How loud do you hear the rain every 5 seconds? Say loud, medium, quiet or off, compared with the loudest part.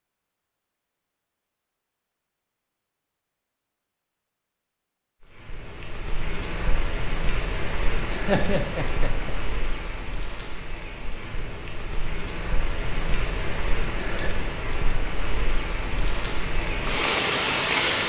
off, medium, medium, loud.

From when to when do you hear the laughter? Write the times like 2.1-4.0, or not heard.
8.1-9.3.